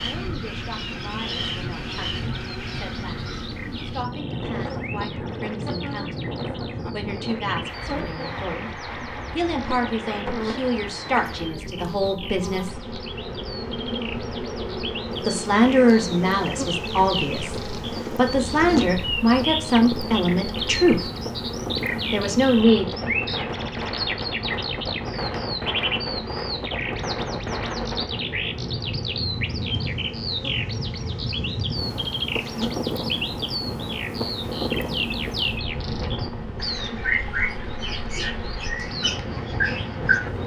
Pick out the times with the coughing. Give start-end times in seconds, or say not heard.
not heard.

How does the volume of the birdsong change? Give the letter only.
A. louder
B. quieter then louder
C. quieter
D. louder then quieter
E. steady
A.